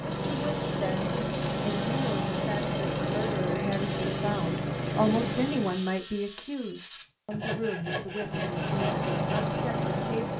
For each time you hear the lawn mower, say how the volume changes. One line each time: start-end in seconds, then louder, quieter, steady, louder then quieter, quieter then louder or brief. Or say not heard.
0.0-5.9 steady
8.2-10.3 brief.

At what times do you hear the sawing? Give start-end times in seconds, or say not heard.
0.1-9.6.